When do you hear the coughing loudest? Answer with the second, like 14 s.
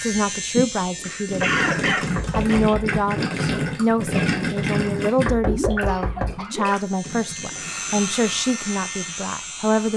2 s.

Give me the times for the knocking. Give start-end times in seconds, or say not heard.
2.1-3.0, 5.2-6.4.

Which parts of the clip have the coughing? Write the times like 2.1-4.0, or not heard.
0.6-2.6, 5.8-6.6.